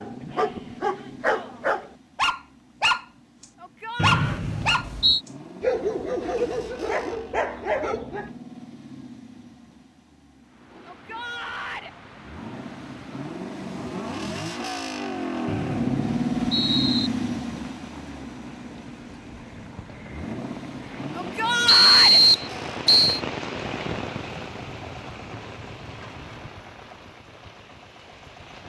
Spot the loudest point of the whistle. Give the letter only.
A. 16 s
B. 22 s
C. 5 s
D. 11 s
B.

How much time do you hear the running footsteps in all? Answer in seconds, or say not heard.
not heard.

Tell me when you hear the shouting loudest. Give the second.
22 s.